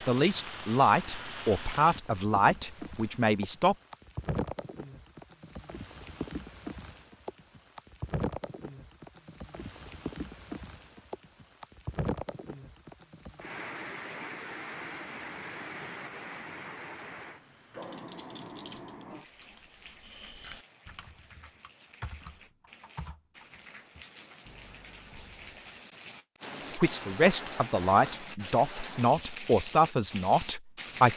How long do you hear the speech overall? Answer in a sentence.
You can hear the speech for 8 seconds altogether.